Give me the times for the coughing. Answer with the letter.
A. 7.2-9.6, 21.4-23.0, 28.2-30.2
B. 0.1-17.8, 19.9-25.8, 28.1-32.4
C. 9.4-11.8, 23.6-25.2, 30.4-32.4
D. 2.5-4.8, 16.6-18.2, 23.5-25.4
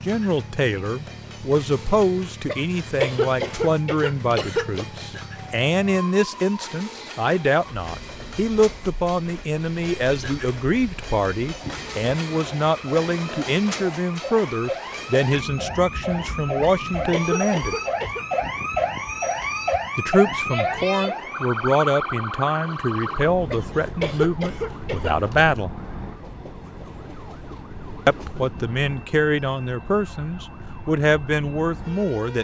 D.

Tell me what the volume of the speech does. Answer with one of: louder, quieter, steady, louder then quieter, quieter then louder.
steady.